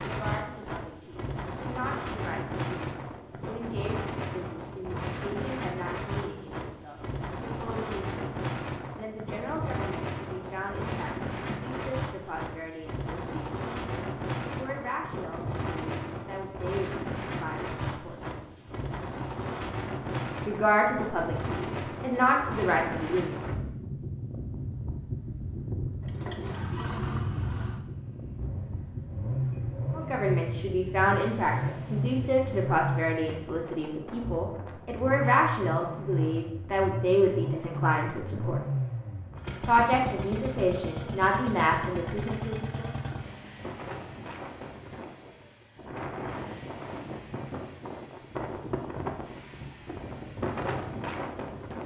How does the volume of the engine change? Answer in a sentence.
The loudness of the engine goes down.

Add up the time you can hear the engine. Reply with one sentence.
The engine can be heard for 26 seconds in total.